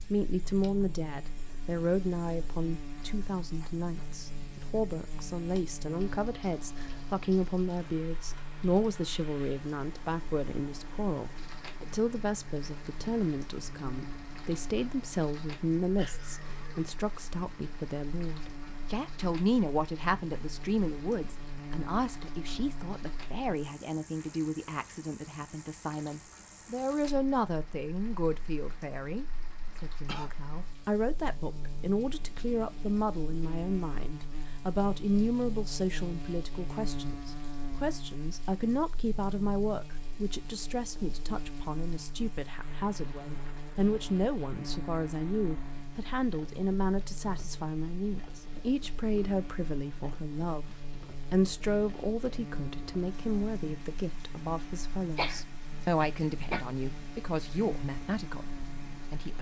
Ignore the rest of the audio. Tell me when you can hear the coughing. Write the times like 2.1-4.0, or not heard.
15.9-16.9, 29.6-30.3, 55.1-56.6.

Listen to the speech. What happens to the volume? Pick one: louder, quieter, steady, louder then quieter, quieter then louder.
steady.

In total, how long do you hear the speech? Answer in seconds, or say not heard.
59 s.